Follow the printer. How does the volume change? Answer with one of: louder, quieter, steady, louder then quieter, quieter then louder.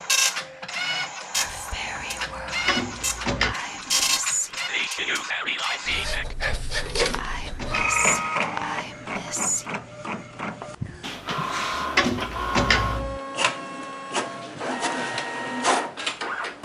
steady.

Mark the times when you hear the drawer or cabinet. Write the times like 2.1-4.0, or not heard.
2.6-3.5, 7.0-8.0, 11.9-13.2.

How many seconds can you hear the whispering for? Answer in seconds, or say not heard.
8 s.